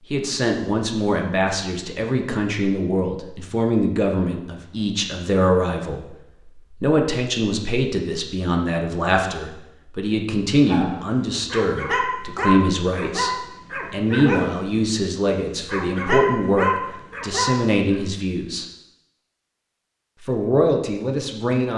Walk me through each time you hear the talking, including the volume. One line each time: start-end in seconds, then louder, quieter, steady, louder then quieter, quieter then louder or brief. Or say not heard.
0.1-18.6 steady
20.2-21.7 brief.